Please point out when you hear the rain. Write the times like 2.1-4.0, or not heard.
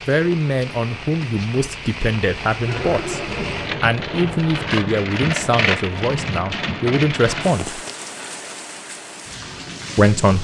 0.0-10.3.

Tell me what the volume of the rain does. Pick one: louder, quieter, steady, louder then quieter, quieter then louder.
louder then quieter.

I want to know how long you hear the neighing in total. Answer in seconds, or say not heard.
2 s.